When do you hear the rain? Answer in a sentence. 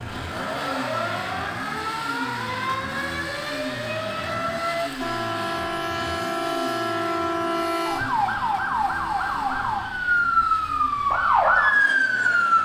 The rain can't be heard in this clip.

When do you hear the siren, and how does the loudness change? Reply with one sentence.
You can hear the siren from 0.0 to 12.6 s, getting louder.